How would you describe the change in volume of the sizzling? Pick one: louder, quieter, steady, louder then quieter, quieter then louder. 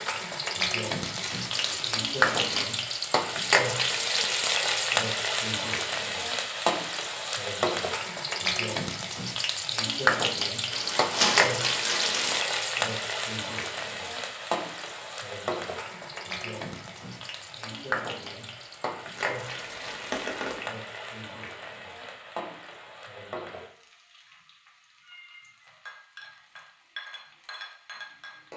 quieter.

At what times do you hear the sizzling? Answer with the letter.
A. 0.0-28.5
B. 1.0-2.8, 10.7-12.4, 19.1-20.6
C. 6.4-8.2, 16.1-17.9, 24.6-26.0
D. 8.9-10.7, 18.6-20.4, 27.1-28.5
A.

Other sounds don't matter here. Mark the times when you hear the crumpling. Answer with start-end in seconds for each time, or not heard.
1.0-2.8, 10.7-12.4, 19.1-20.6.